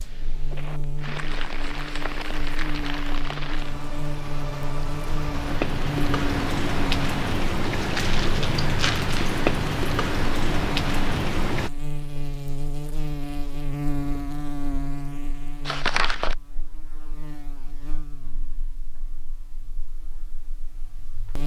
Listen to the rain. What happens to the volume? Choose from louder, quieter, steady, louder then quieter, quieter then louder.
louder.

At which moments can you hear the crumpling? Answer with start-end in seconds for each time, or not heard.
1.1-3.5, 7.8-9.3, 15.7-16.4.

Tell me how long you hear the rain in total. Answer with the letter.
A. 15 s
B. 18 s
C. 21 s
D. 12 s
D.